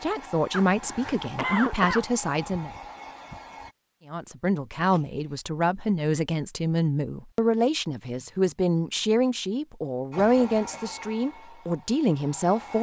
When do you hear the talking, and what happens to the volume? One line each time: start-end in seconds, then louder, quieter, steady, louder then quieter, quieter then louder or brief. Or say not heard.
0.0-2.7 brief
4.0-12.7 steady.